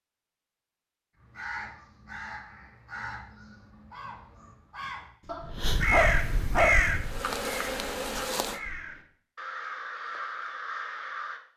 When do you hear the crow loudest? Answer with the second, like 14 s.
7 s.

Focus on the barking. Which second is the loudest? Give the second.
7 s.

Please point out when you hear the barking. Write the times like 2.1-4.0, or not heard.
5.2-7.0.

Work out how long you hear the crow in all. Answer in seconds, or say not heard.
10 s.